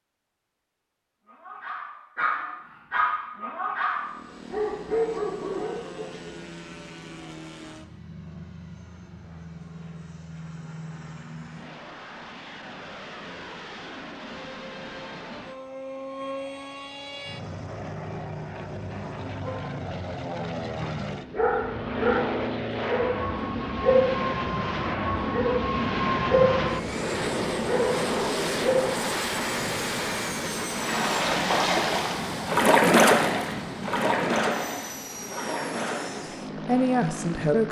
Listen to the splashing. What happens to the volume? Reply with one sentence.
The loudness of the splashing goes up, then down.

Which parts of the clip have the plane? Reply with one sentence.
The plane can be heard from 3.9 to 37.6 s.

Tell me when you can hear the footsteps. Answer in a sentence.
You can't hear the footsteps here.